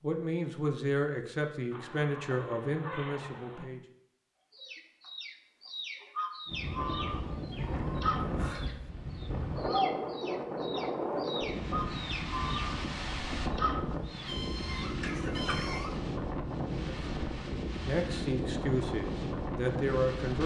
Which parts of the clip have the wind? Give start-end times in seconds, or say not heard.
6.5-20.4.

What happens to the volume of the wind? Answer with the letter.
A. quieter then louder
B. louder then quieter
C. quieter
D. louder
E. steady
E.